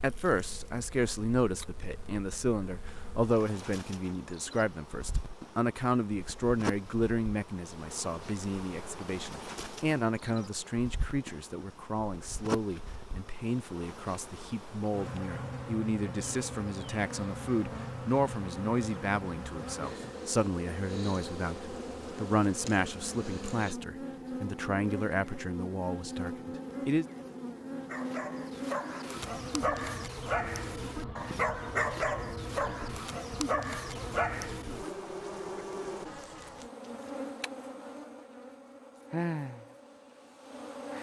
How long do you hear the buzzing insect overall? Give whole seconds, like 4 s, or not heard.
41 s.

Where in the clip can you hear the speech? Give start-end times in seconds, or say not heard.
0.0-27.1.